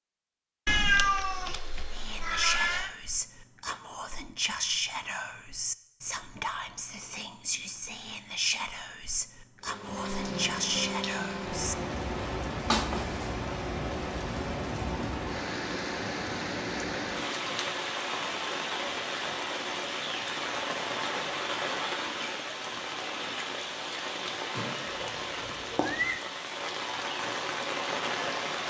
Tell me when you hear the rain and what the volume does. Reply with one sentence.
The rain can be heard from 9.6 to 28.6 s, at a steady volume.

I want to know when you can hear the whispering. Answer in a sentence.
The whispering can be heard from 1.9 to 11.8 s.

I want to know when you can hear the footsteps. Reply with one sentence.
The footsteps can't be heard in this clip.